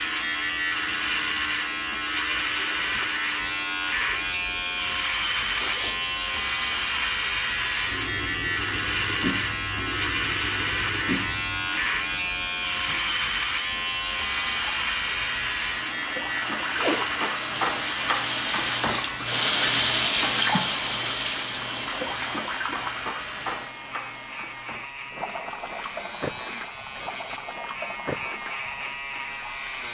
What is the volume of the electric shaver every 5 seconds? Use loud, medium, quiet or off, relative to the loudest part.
loud, loud, loud, loud, medium, medium.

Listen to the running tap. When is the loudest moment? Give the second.
20 s.